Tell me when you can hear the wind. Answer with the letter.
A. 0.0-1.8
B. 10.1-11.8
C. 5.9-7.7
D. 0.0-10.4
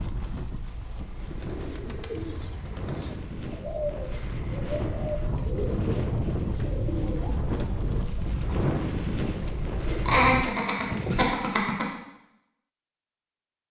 D.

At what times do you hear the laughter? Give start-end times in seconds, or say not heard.
10.1-11.8.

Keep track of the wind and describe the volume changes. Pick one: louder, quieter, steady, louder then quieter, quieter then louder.
louder.